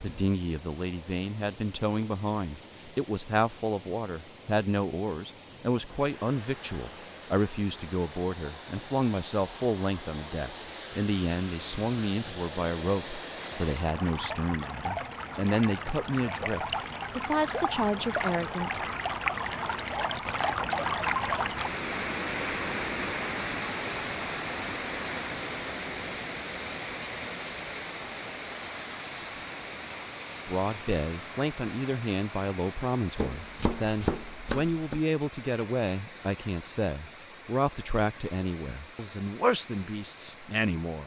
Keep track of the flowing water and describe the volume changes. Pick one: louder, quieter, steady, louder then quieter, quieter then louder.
louder then quieter.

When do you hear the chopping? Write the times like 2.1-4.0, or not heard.
33.1-35.0.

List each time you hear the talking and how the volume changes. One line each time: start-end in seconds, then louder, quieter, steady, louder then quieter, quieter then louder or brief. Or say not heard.
0.0-18.9 steady
30.4-41.0 steady.